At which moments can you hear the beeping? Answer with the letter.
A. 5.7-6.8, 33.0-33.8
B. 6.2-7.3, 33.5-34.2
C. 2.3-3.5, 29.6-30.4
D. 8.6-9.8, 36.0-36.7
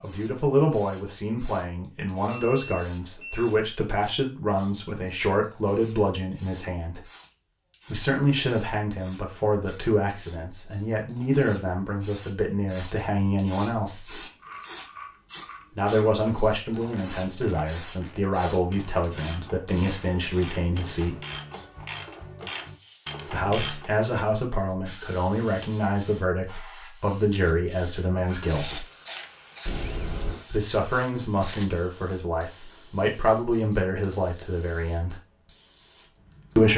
C.